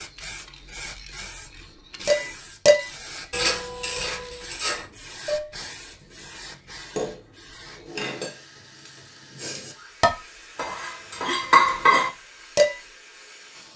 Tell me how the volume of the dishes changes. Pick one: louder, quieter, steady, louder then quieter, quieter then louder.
quieter then louder.